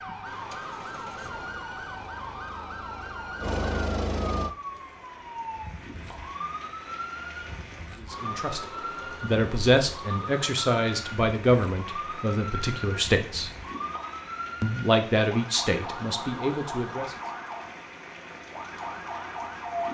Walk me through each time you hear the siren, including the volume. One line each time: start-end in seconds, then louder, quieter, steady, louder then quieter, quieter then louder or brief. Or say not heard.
0.0-19.8 steady.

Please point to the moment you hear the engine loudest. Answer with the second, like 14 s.
4 s.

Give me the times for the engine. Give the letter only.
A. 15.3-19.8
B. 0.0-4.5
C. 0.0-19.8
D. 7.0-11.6
B.